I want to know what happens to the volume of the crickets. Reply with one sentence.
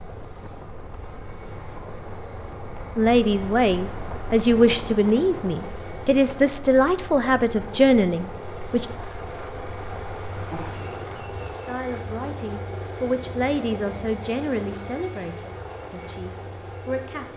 The loudness of the crickets goes up, then down.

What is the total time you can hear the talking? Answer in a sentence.
You can hear the talking for 12 seconds altogether.